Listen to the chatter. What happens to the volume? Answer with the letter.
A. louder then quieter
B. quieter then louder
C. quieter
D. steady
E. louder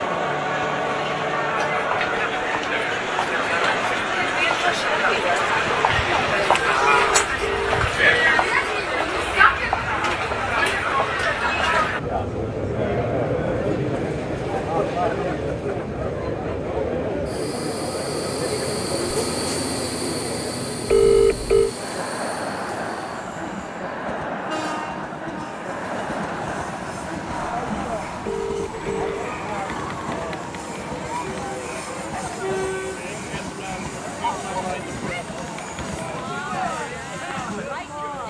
C.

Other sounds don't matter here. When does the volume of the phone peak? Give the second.
21 s.